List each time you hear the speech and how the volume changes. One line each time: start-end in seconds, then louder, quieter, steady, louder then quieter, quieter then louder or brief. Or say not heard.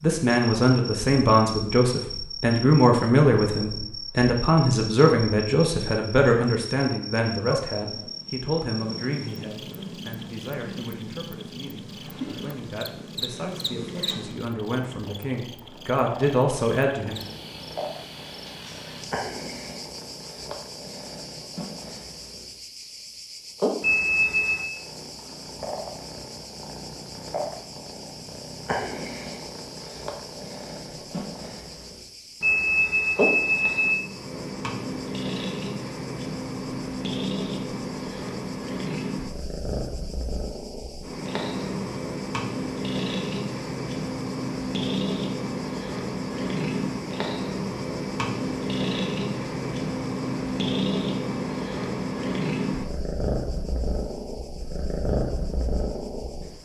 0.0-17.2 quieter then louder.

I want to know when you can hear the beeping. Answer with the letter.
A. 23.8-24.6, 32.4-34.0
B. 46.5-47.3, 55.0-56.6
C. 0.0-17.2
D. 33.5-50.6
A.